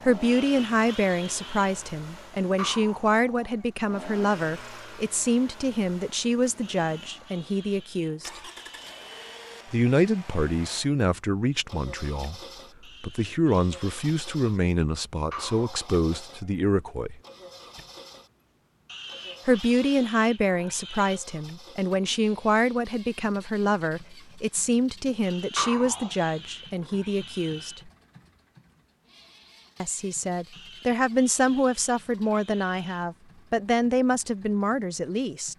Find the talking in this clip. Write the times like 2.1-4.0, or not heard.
0.0-8.4, 9.7-12.4, 13.0-17.2, 19.4-27.9, 29.8-35.5.